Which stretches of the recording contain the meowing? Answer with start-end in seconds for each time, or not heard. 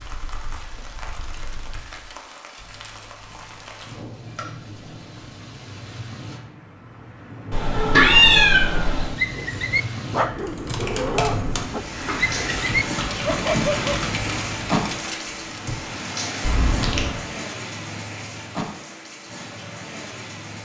2.5-5.2, 7.5-9.2, 16.4-17.1.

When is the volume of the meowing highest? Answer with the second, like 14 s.
8 s.